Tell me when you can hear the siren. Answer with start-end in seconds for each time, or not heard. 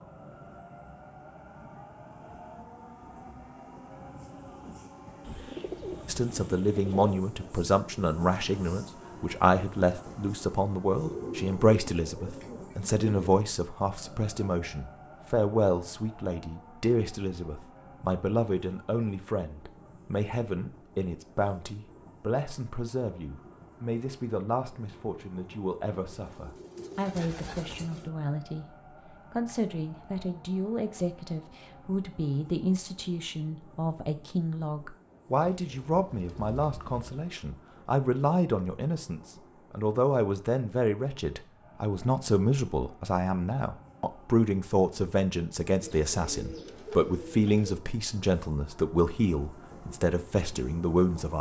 not heard.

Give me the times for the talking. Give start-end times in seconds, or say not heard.
6.0-51.3.